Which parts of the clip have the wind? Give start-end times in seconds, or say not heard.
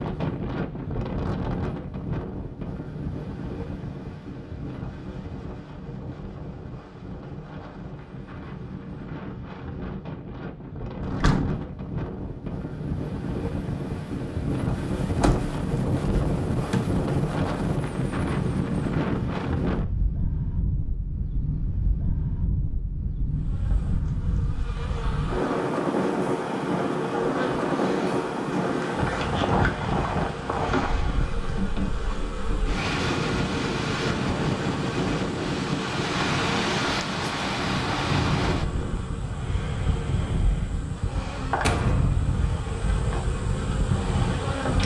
0.0-44.8.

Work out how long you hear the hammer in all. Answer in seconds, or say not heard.
not heard.